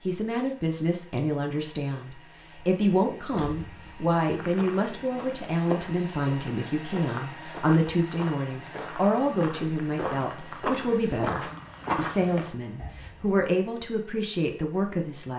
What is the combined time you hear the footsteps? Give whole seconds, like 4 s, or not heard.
8 s.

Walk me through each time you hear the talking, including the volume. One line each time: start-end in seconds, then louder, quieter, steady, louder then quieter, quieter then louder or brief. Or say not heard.
0.1-15.3 steady.